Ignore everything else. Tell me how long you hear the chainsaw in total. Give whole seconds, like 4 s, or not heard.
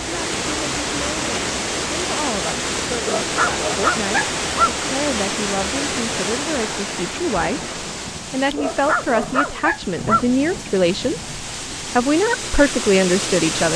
not heard.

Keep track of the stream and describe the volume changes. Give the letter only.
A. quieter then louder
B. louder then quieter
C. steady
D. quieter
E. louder
A.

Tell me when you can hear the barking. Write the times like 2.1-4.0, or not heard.
3.0-4.8, 8.6-10.2.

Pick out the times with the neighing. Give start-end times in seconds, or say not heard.
not heard.